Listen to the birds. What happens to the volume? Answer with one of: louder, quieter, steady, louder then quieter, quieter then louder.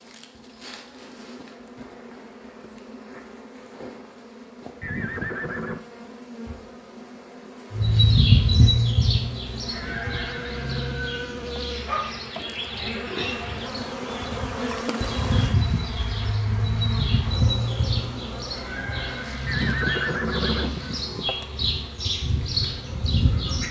quieter then louder.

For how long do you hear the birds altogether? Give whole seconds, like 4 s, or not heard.
16 s.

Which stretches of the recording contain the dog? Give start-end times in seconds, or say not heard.
11.4-12.2.